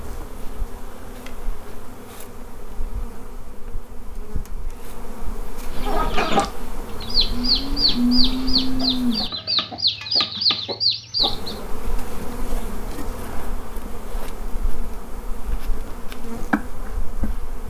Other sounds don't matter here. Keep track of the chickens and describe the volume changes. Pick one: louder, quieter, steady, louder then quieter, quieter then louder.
steady.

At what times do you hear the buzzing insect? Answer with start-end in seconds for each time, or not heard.
0.0-9.3, 11.2-17.6.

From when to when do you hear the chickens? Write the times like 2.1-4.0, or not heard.
5.8-11.6.